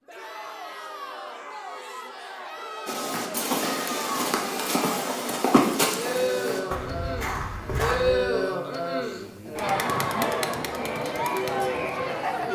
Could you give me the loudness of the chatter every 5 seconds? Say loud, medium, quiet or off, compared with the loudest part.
medium, loud, loud.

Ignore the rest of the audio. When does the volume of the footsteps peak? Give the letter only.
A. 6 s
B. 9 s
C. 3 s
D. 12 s
A.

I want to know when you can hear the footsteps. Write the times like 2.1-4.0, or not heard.
2.9-8.2.